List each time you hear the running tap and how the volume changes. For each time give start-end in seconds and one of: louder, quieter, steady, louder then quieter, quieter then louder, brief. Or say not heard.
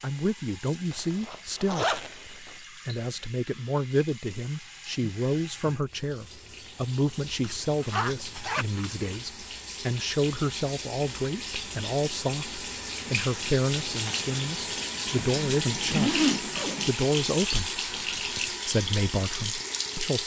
0.0-20.2 louder.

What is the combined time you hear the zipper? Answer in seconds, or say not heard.
5 s.